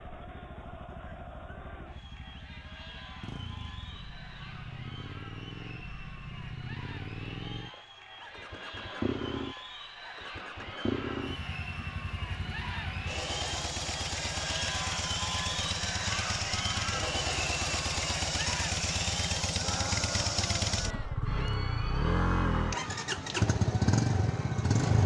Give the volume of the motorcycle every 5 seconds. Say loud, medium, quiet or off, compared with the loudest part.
quiet, medium, medium, loud, loud.